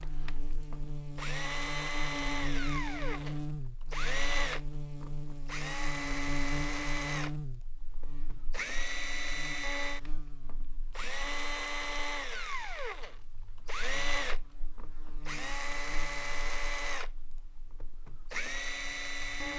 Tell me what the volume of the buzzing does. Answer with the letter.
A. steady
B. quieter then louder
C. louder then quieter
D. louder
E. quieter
E.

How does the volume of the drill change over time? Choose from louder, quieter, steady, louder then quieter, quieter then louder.
steady.